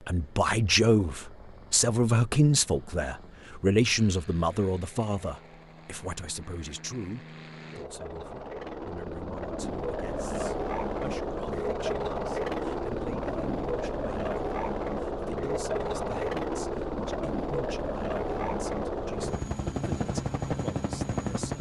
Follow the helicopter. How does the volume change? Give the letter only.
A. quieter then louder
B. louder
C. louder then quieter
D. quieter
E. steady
B.